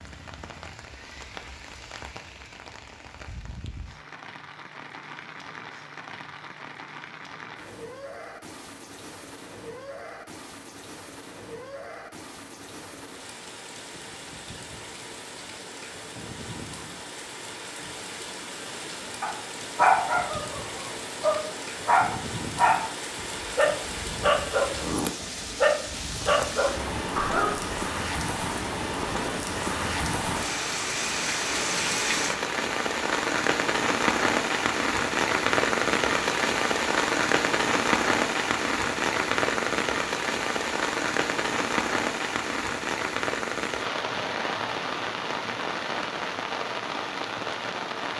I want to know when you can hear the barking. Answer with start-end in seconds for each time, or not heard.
19.2-27.8.